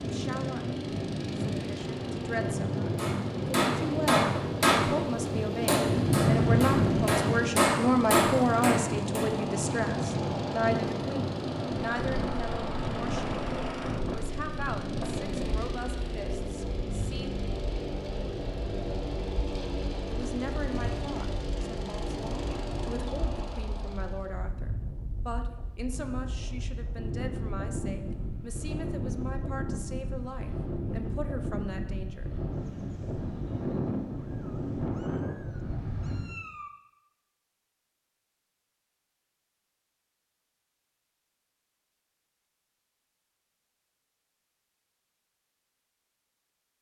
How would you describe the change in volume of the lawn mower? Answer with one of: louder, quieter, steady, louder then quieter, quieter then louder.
steady.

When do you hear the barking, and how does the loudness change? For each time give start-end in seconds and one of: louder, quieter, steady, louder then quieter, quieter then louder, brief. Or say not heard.
not heard.